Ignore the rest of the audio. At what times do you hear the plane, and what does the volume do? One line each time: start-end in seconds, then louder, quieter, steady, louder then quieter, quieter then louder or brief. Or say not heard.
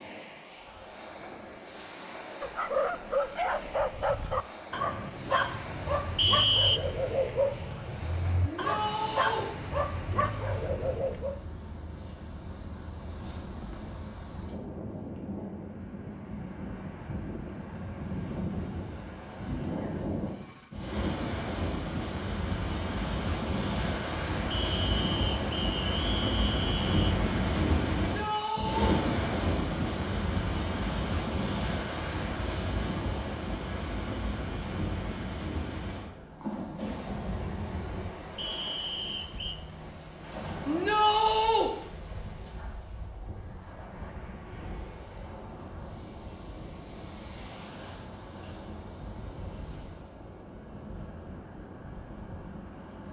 not heard.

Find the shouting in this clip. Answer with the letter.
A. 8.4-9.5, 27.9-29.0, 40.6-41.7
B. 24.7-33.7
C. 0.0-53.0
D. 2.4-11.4
A.